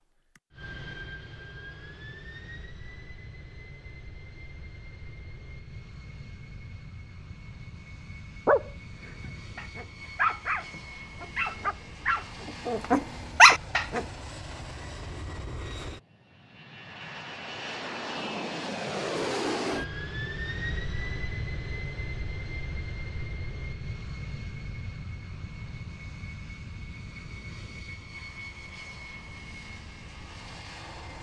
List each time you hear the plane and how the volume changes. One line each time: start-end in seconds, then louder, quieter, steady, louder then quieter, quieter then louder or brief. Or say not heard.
0.0-31.1 louder then quieter.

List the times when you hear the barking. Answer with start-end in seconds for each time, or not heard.
8.4-14.0.